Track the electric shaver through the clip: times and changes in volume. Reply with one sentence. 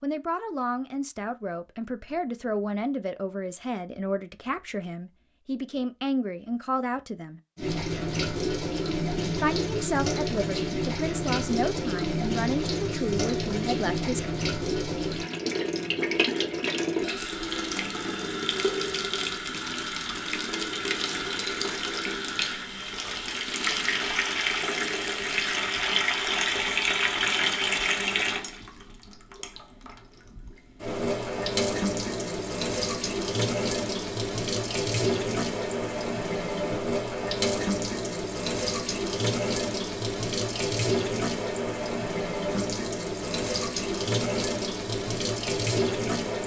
You can't hear the electric shaver here.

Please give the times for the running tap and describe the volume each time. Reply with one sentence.
You can hear the running tap from 7.5 to 46.4 s, at a steady volume.